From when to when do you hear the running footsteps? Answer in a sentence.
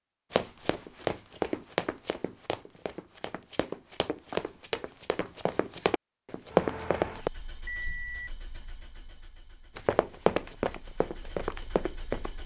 You can hear the running footsteps from 0.3 to 7.3 s and from 9.8 to 12.3 s.